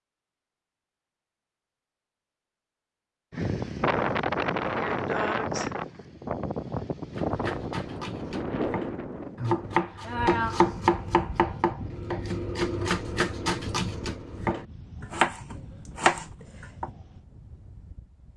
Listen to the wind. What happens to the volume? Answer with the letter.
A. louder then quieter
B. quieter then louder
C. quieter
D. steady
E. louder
C.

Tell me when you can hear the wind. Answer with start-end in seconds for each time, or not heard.
3.3-18.3.